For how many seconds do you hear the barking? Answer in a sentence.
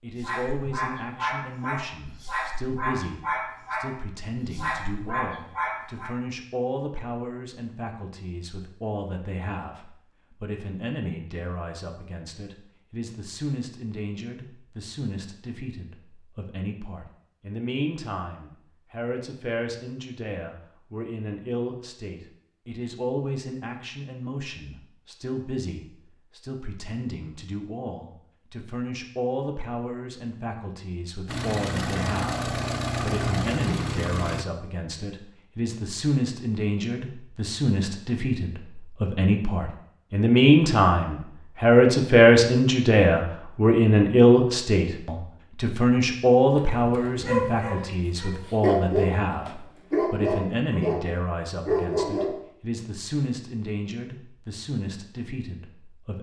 You can hear the barking for 12 seconds altogether.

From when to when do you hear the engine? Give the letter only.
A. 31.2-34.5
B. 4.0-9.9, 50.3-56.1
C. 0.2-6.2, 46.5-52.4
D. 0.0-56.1
A.